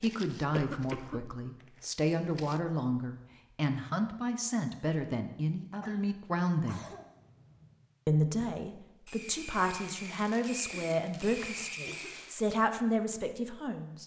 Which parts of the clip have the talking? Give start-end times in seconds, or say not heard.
0.0-6.8, 8.1-14.0.